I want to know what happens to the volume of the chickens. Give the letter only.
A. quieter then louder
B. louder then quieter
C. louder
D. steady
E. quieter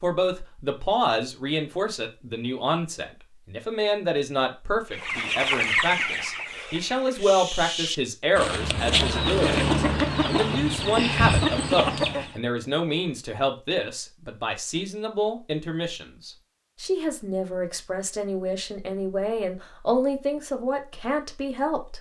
A.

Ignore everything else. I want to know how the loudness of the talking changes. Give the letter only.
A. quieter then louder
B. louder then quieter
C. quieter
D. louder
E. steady
E.